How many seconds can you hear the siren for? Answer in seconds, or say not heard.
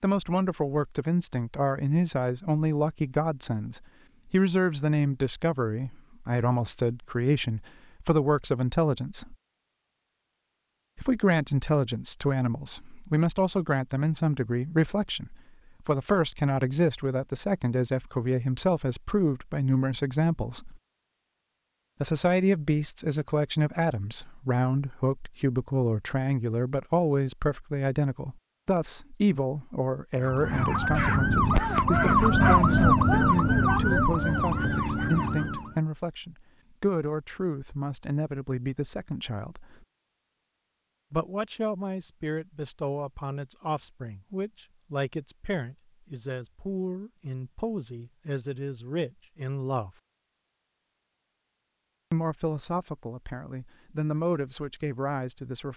6 s.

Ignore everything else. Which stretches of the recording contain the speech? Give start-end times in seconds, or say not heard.
0.0-9.3, 10.9-20.8, 22.0-39.9, 41.1-49.9, 52.1-55.7.